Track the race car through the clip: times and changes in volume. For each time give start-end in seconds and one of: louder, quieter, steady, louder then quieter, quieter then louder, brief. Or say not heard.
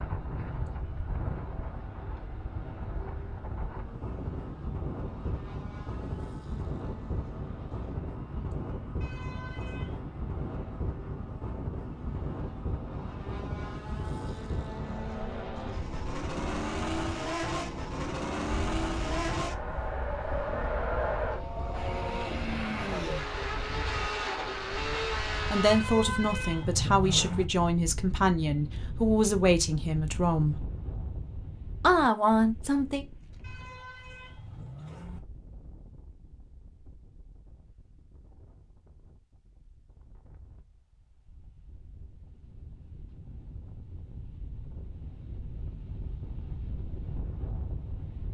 0.0-25.9 louder.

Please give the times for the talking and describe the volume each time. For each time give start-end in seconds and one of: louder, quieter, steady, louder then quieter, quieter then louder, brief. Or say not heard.
25.4-30.6 steady
31.8-33.0 brief.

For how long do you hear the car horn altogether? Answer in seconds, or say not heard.
5 s.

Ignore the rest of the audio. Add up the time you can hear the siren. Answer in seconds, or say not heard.
not heard.